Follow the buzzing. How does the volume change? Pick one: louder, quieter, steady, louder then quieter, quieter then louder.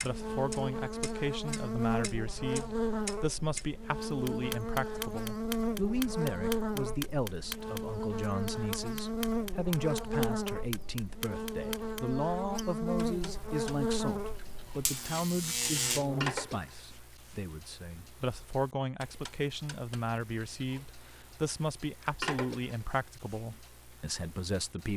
steady.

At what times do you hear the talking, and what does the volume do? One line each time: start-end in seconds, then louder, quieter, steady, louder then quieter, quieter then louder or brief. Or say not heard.
0.0-24.9 steady.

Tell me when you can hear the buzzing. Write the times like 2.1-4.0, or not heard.
0.0-16.4.